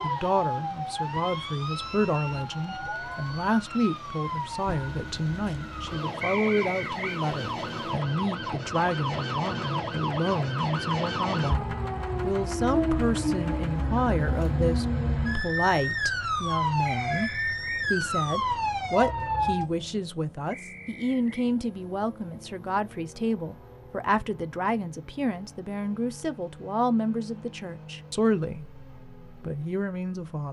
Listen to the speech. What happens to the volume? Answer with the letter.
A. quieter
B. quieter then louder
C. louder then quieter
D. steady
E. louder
D.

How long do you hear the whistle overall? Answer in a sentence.
The whistle can be heard for 3 seconds in total.